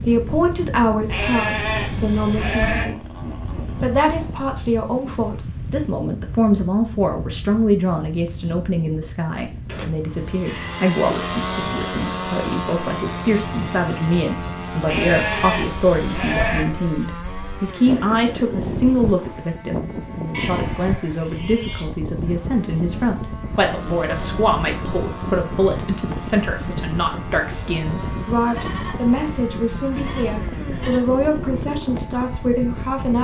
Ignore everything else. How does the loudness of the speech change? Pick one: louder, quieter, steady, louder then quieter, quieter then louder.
steady.